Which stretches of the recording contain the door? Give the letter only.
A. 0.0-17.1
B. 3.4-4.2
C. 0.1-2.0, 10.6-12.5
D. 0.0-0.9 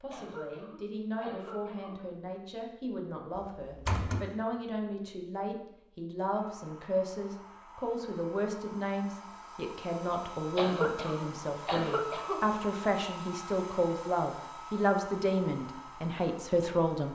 B.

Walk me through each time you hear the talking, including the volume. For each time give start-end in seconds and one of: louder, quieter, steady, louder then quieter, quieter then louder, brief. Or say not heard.
0.0-17.1 louder.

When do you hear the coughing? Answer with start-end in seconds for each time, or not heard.
0.1-2.0, 10.6-12.5.